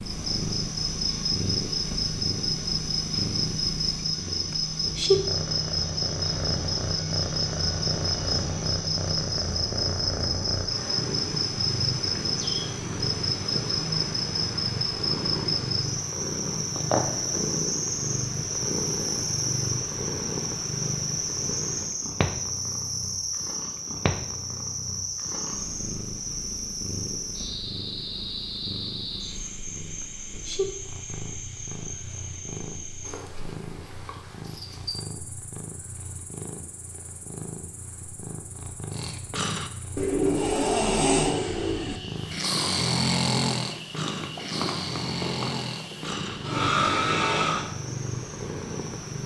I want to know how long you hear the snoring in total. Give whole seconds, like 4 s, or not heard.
9 s.